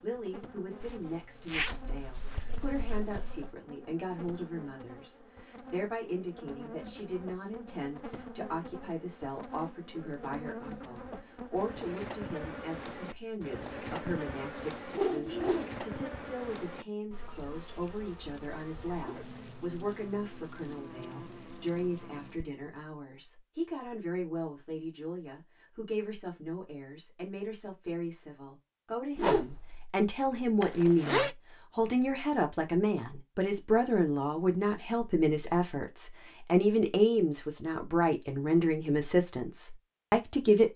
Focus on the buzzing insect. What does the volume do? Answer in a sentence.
The loudness of the buzzing insect goes up, then down.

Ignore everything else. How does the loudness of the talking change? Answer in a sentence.
The loudness of the talking goes up.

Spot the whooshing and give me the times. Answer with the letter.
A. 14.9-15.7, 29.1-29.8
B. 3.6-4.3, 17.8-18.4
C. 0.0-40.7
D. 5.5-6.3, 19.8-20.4
A.